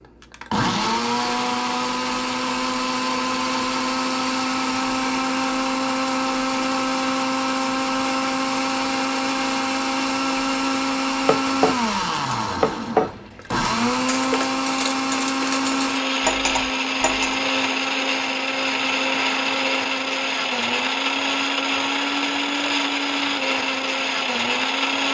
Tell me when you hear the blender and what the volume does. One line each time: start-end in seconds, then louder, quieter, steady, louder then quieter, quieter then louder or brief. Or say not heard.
0.0-25.0 steady.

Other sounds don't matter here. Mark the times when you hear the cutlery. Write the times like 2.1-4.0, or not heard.
11.2-17.4.